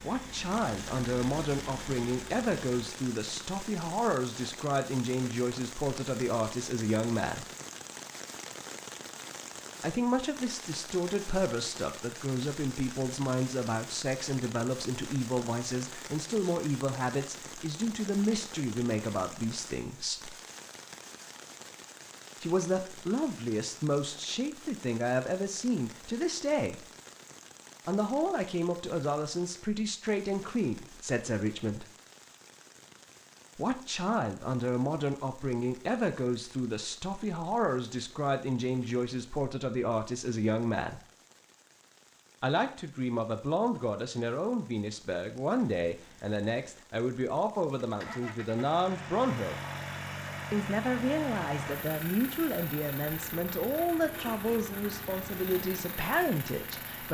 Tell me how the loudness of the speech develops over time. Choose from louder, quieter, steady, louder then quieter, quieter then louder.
steady.